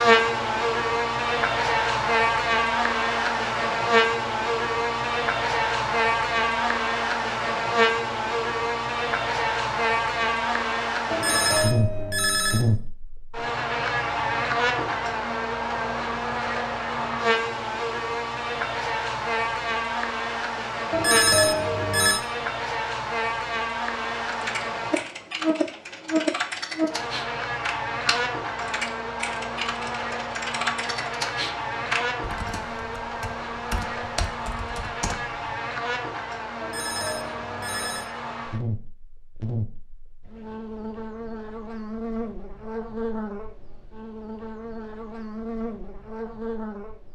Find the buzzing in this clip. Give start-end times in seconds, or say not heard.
0.0-47.0.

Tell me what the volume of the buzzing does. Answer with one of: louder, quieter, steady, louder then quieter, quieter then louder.
quieter.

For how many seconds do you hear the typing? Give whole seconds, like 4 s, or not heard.
11 s.